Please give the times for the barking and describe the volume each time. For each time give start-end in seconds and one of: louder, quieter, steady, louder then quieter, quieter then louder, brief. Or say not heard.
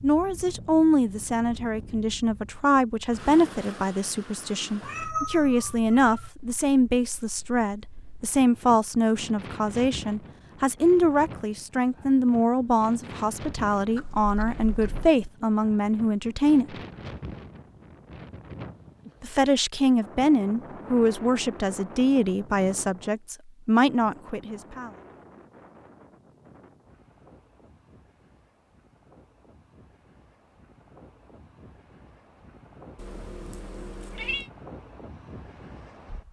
not heard.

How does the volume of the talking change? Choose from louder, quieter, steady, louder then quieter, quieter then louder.
steady.